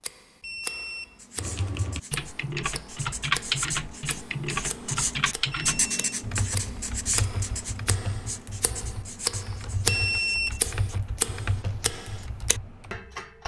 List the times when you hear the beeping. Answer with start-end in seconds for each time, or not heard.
0.4-1.2, 5.5-6.1, 9.8-10.7.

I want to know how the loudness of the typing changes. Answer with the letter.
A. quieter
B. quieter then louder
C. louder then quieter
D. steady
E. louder
A.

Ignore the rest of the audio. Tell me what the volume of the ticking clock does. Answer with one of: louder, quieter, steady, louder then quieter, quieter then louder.
louder.